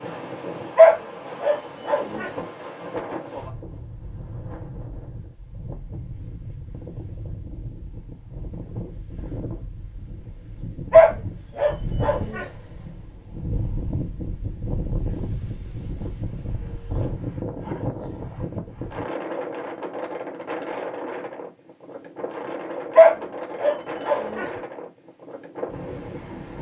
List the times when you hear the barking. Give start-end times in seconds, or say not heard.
0.8-2.3, 10.9-12.4, 22.9-24.5.